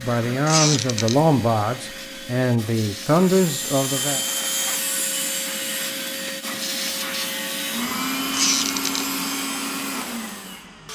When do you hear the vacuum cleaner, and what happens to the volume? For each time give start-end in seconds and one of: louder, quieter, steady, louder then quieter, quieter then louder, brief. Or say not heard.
0.0-10.8 louder.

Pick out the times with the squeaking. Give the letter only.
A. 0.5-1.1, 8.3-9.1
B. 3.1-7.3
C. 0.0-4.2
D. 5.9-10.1
A.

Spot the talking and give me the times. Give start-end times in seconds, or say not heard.
0.0-4.2.